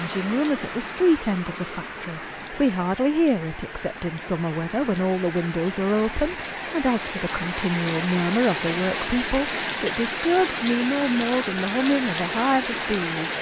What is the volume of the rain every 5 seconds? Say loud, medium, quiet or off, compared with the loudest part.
medium, loud, loud.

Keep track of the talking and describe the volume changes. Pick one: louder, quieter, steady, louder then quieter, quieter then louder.
steady.